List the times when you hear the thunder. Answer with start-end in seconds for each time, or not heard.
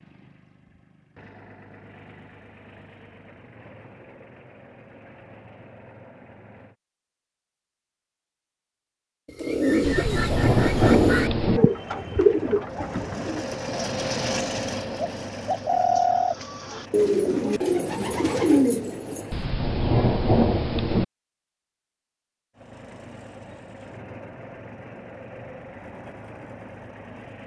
9.8-11.6, 19.3-21.1.